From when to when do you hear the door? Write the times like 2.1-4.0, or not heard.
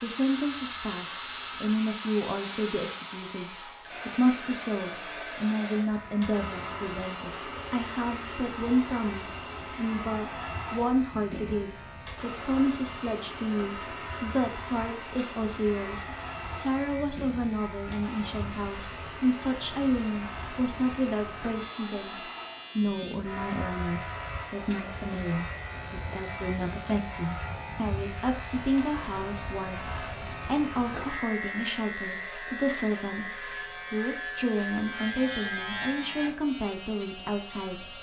not heard.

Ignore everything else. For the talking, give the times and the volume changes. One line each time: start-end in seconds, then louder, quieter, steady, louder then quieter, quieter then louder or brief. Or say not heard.
0.0-37.9 steady.